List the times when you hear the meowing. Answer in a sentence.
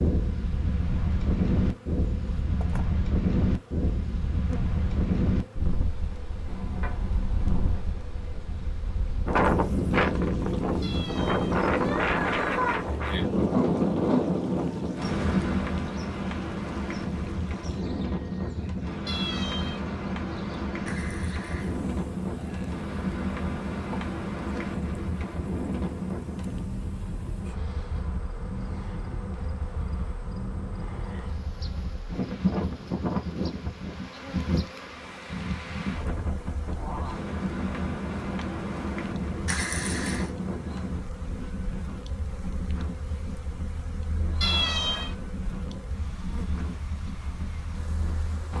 You can hear the meowing from 10.8 to 12.8 s, from 19.1 to 19.9 s and from 44.4 to 45.1 s.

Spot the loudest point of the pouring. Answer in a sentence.
The volume of the pouring peaks at 40 seconds.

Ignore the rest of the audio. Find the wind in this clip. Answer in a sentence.
You can hear the wind from 0.0 to 48.5 s.